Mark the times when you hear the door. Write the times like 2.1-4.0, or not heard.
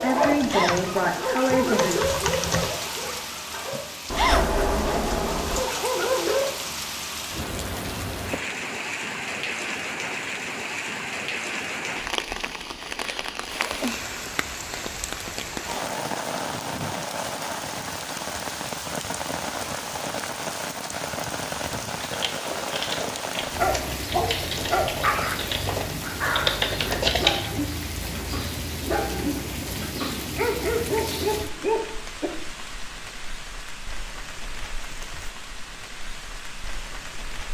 4.1-5.7.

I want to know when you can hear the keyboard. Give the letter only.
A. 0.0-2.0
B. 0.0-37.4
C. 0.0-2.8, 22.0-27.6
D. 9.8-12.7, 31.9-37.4
C.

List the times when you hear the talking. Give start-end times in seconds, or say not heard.
0.0-2.0.